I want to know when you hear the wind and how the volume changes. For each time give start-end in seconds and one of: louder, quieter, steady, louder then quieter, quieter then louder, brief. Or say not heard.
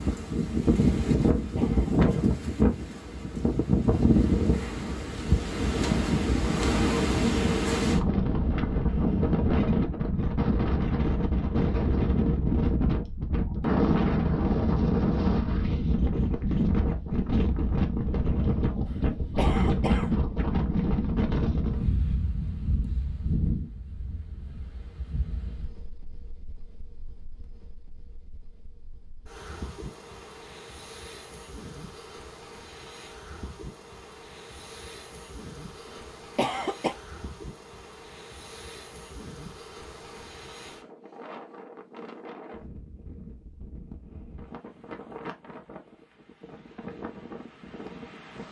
0.0-48.4 quieter.